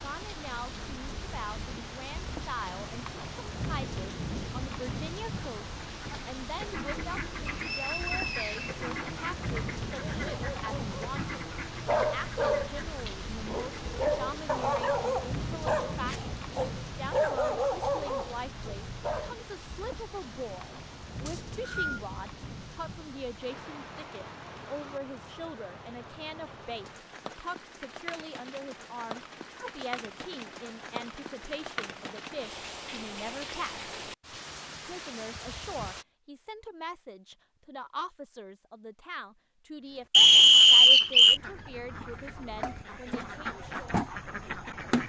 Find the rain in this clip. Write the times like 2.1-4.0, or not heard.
0.0-36.0.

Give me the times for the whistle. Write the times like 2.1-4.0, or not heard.
7.5-8.8, 21.2-22.0, 40.1-41.4.